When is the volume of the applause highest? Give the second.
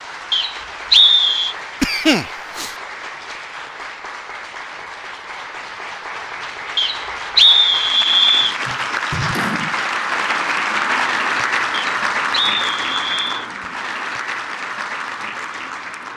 11 s.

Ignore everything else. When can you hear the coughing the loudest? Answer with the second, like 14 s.
2 s.